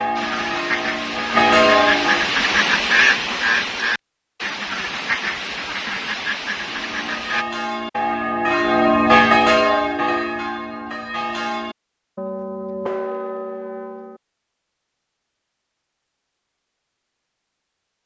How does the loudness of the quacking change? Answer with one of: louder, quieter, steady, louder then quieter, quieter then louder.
louder then quieter.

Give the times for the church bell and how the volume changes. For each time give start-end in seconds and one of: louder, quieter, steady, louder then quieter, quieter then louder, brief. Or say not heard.
0.0-2.3 brief
6.5-14.2 louder then quieter.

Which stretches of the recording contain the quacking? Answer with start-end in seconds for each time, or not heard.
0.1-7.5.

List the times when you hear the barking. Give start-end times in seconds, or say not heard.
not heard.